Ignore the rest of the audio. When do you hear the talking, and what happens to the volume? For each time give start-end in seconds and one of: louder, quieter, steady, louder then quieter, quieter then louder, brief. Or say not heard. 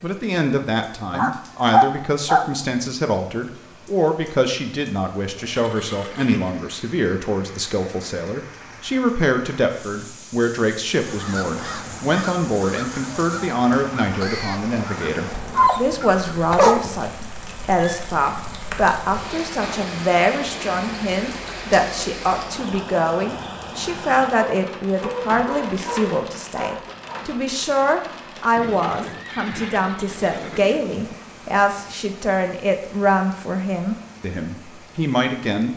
0.0-35.7 steady.